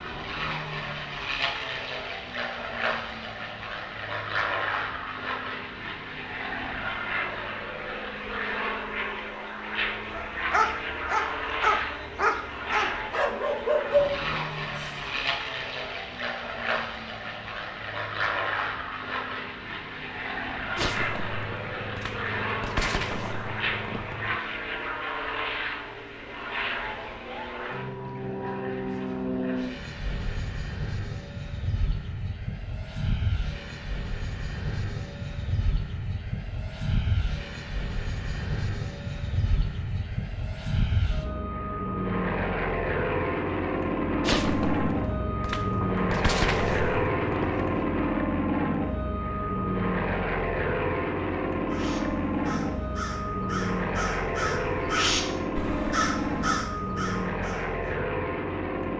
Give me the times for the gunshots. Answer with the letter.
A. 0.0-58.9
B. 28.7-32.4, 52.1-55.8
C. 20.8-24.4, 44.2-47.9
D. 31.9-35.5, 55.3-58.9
C.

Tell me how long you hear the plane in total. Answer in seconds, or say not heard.
59 s.